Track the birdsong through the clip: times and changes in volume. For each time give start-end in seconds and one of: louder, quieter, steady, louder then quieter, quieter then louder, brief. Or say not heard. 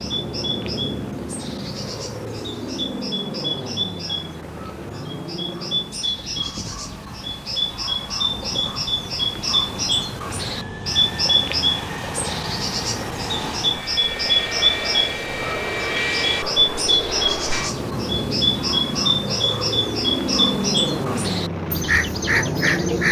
0.0-23.0 louder.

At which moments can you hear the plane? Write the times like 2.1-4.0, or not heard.
0.0-23.0.